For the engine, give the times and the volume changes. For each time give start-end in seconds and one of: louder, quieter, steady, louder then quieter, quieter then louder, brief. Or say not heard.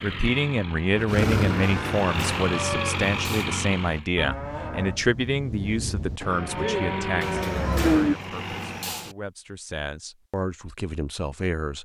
0.0-4.0 louder
6.2-9.1 brief.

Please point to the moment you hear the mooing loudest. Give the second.
8 s.